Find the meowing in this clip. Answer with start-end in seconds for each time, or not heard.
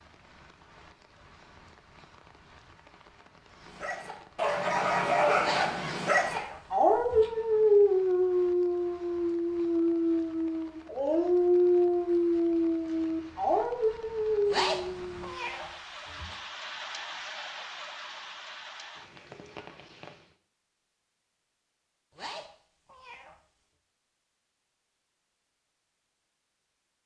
5.4-7.3, 14.4-16.4, 22.1-23.4.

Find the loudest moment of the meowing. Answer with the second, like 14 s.
15 s.